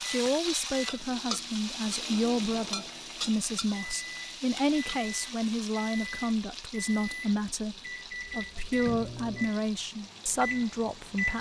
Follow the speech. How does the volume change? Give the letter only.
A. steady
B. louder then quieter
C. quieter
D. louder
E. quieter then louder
A.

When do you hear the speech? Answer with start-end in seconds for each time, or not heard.
0.1-11.3.